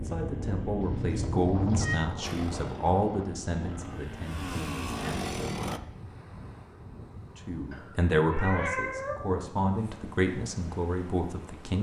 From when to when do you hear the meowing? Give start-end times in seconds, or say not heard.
0.8-2.0, 7.7-9.2.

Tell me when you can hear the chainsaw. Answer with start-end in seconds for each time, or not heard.
2.2-5.8.